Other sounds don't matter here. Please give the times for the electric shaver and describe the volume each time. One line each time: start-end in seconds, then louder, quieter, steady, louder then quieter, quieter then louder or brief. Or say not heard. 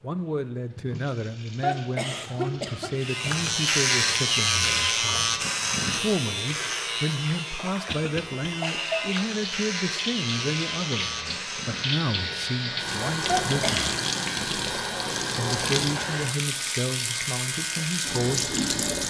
3.0-19.0 quieter.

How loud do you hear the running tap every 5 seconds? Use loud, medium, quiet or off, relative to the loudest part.
quiet, medium, loud, loud.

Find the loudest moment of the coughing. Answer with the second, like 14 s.
2 s.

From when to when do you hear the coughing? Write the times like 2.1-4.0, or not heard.
1.6-3.0, 7.8-8.4, 13.2-14.0.